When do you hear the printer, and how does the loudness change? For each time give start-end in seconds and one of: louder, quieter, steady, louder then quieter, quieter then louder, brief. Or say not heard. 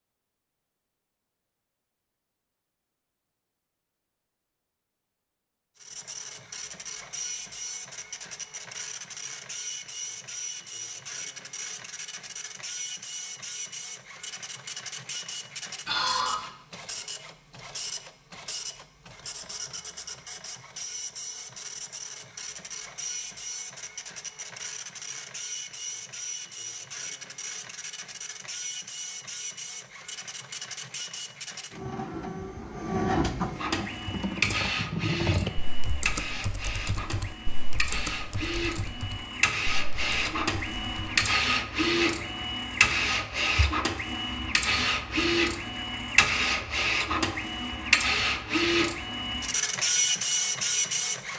5.8-51.3 louder.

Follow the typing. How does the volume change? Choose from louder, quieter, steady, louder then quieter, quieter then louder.
quieter.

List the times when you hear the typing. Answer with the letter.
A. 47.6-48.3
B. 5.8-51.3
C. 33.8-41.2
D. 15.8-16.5
C.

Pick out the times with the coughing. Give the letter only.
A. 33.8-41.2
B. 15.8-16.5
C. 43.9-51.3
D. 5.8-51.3
B.